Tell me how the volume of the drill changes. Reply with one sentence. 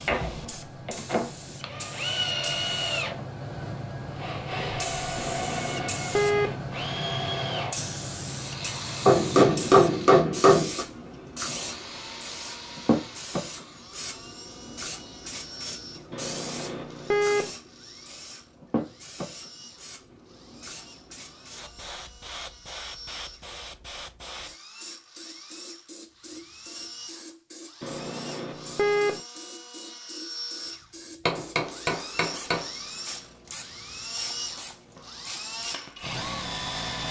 The loudness of the drill goes down, then up.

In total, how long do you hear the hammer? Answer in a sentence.
You can hear the hammer for 3 seconds altogether.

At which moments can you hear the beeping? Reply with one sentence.
The beeping can be heard from 5.2 to 6.5 s, from 16.1 to 17.5 s and from 27.8 to 29.2 s.